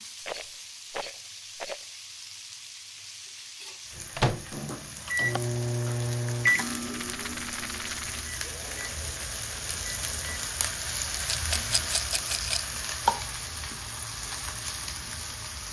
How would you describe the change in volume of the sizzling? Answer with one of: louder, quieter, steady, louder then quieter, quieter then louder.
louder.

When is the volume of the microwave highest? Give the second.
6 s.